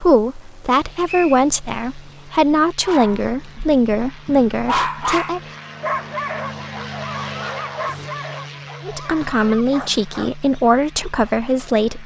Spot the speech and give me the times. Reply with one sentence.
The speech can be heard from 0.0 to 5.4 s and from 8.8 to 12.0 s.